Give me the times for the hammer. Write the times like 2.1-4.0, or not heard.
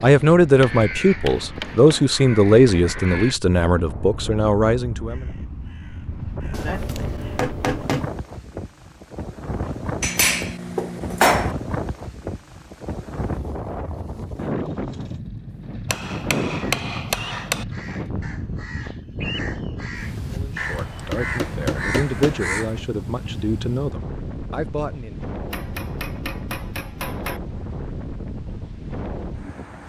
0.6-2.2, 6.5-8.2, 10.0-11.6, 15.8-17.6, 20.1-22.9, 25.5-27.4.